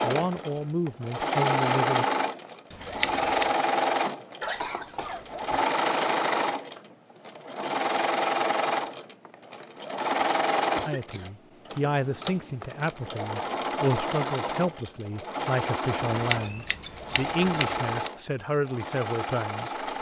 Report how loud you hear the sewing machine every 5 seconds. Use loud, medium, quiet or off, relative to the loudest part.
loud, loud, loud, medium.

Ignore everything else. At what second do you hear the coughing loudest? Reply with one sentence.
The volume of the coughing peaks at 5 seconds.